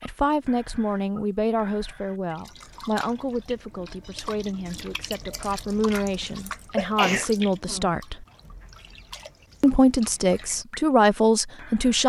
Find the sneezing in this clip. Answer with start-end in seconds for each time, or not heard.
5.7-7.3.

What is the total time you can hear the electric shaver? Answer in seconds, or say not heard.
not heard.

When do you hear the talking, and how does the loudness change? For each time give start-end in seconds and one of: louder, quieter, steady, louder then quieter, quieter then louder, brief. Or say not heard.
0.0-8.2 quieter then louder
9.6-12.0 brief.